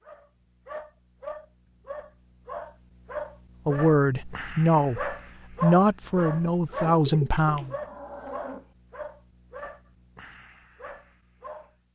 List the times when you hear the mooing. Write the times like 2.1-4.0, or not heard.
7.7-8.7.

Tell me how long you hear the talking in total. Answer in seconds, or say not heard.
4 s.